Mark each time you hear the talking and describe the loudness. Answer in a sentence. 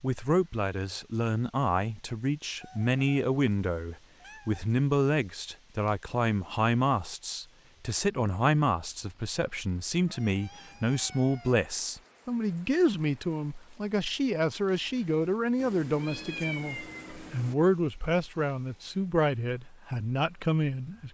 The talking can be heard from 0.0 to 21.0 s, at a steady volume.